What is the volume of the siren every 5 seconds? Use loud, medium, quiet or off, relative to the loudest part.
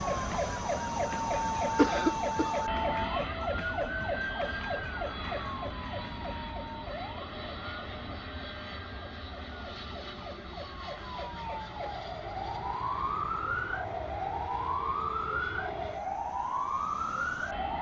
loud, medium, loud, loud.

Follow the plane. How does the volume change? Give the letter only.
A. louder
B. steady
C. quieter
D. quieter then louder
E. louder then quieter
C.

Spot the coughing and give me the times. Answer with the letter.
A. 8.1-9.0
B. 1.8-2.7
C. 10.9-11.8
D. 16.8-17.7
B.